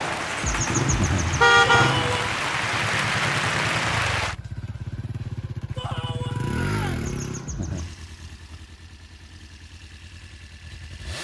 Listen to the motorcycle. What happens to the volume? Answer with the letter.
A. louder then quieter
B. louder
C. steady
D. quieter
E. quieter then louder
D.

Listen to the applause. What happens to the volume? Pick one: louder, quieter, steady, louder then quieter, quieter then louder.
louder.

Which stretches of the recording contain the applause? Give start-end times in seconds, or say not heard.
0.0-4.3.